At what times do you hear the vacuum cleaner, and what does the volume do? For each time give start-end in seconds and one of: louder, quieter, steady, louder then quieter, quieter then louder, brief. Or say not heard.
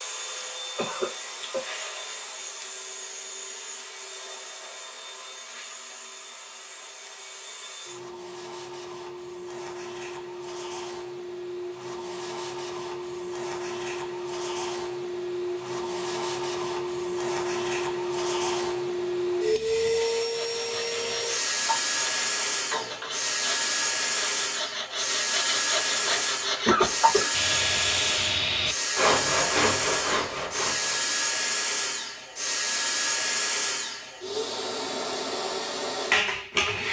0.0-36.8 louder.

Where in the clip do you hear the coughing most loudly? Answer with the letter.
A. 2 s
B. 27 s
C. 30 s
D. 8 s
B.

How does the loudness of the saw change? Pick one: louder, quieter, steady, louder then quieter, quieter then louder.
louder.